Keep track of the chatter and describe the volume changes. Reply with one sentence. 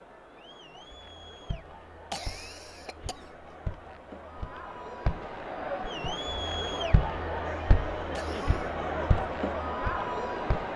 The loudness of the chatter goes up.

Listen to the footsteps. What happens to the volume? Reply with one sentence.
The volume of the footsteps goes up, then down.